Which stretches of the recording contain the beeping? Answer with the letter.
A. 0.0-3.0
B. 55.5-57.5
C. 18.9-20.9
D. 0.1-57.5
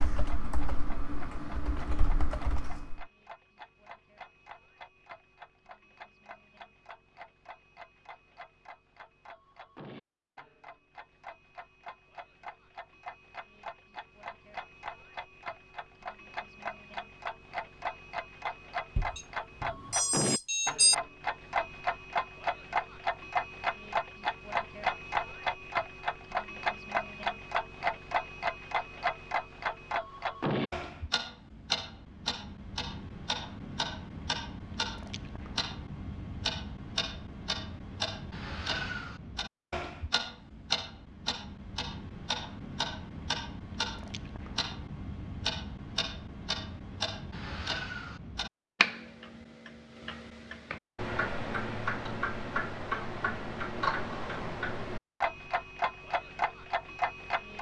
C.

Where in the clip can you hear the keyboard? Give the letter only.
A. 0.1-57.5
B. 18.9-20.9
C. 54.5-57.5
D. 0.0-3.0
D.